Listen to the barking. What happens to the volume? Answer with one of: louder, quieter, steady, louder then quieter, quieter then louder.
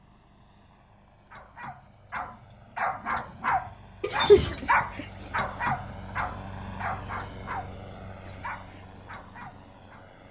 louder then quieter.